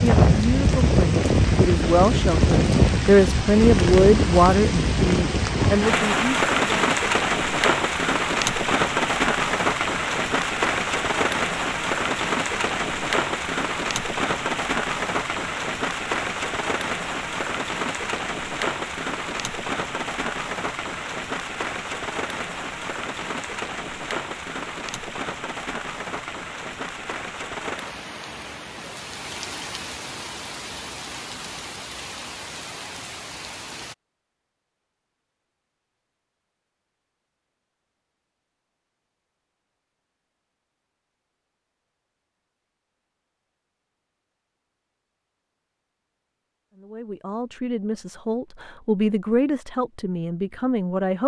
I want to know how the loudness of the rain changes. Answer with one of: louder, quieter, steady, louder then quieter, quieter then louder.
quieter.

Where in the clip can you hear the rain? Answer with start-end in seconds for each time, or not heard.
0.0-34.0.